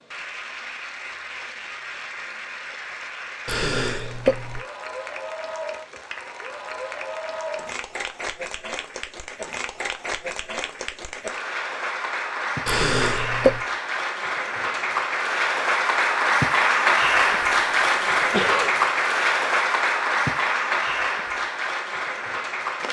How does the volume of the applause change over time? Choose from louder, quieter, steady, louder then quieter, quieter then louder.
louder.